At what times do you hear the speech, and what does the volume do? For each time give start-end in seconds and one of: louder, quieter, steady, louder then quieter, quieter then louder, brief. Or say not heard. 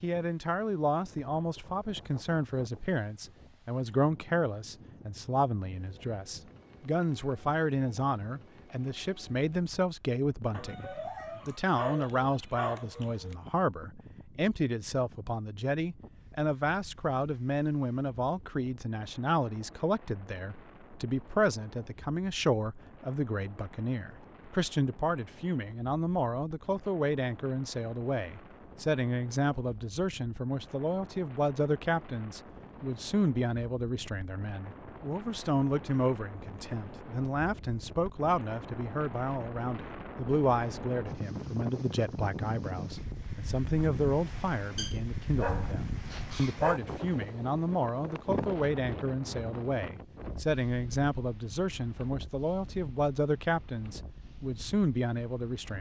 0.0-55.7 steady.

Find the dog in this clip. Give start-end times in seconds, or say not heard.
10.5-13.3, 44.8-46.8.